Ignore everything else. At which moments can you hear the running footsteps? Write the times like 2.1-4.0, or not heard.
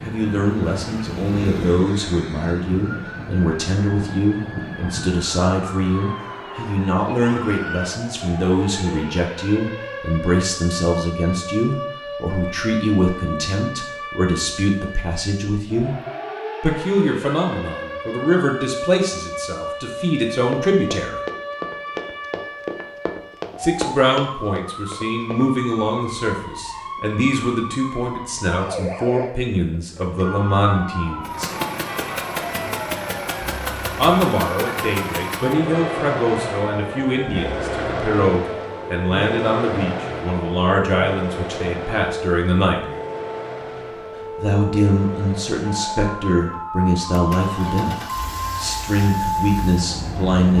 20.4-25.4.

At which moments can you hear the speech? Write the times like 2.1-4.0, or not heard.
0.0-15.9, 16.6-21.1, 23.6-31.5, 34.0-42.9, 44.4-50.5.